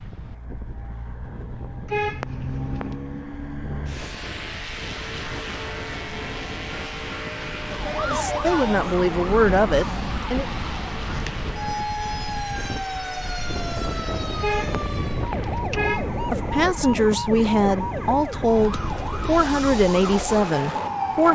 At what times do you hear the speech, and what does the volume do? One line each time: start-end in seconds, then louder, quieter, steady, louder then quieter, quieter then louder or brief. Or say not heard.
8.1-10.4 brief
16.2-21.3 steady.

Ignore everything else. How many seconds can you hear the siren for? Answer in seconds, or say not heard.
14 s.